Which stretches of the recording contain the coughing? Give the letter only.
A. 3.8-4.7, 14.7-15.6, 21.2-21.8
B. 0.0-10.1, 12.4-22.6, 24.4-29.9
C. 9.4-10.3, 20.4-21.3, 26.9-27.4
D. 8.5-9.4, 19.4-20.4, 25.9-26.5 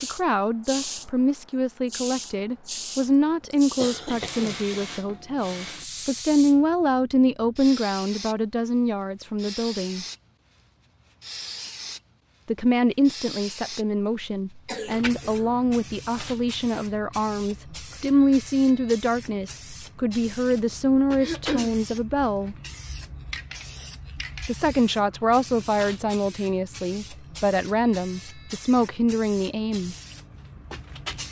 A.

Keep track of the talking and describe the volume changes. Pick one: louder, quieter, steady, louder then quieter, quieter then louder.
steady.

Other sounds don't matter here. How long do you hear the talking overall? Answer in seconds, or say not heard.
26 s.